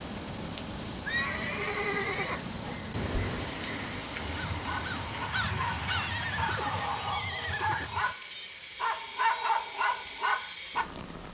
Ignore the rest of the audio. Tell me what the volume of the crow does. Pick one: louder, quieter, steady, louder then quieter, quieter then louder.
louder then quieter.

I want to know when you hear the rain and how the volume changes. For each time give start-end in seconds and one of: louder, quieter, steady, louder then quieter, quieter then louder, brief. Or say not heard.
0.0-11.3 quieter.